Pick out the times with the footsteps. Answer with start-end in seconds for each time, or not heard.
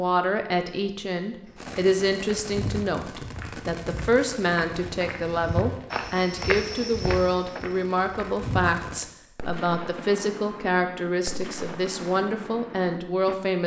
1.4-8.8.